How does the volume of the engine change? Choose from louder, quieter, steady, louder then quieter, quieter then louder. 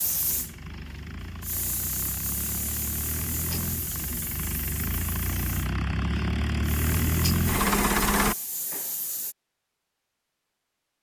louder.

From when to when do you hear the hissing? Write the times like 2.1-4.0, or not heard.
0.0-9.3.